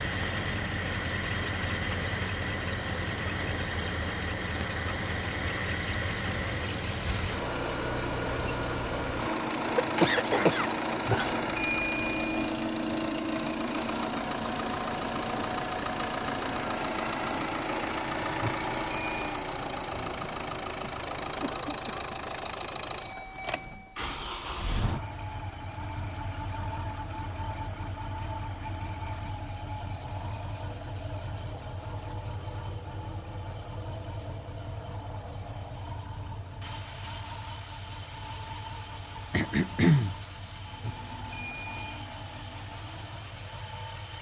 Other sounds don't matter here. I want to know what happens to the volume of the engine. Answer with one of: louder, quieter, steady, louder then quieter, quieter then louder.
quieter.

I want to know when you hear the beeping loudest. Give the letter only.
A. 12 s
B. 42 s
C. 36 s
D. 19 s
A.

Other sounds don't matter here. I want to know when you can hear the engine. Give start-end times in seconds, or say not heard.
0.0-44.1.